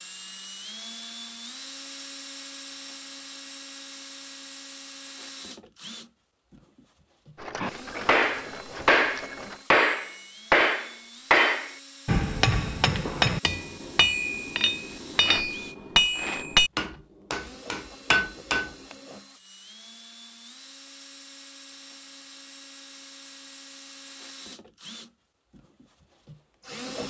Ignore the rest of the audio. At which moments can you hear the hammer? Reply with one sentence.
You can hear the hammer from 7.6 to 18.9 s.